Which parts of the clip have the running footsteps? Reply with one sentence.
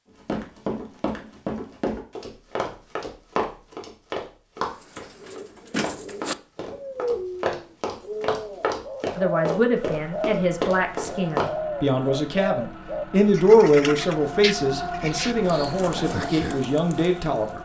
The running footsteps can be heard from 0.2 to 11.6 s.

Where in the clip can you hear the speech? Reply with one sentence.
The speech can be heard from 9.2 to 17.5 s.